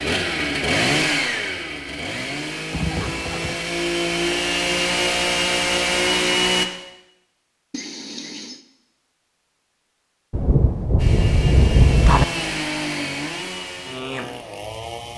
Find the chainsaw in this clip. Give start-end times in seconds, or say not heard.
0.0-6.7, 10.9-15.1.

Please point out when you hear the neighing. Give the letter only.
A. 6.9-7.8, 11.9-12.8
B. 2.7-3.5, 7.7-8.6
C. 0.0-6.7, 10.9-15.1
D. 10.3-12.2
B.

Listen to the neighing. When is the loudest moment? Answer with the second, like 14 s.
3 s.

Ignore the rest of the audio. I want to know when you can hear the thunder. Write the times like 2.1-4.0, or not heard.
10.3-12.2.